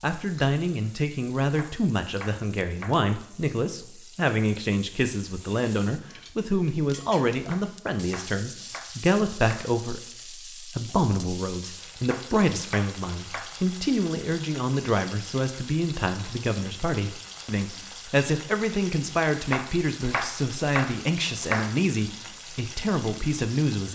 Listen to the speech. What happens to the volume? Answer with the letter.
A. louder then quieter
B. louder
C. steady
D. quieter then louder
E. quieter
C.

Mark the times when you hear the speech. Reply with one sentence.
The speech can be heard from 0.0 to 23.8 s.